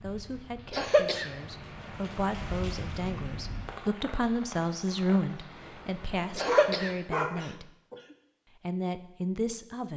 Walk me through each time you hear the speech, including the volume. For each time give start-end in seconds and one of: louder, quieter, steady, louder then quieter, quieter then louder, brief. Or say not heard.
0.0-7.7 louder then quieter
8.6-9.9 brief.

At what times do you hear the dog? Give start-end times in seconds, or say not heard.
6.5-7.3.